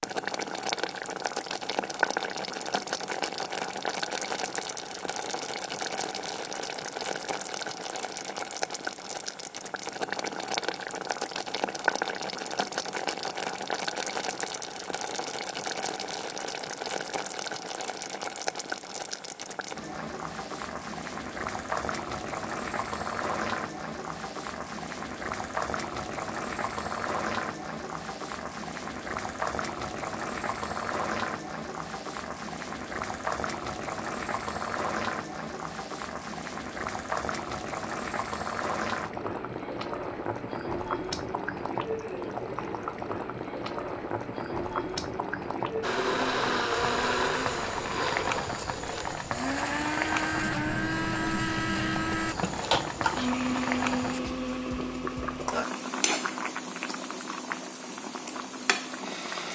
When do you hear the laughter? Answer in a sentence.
You can't hear the laughter here.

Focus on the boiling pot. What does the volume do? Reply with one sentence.
The loudness of the boiling pot stays about the same.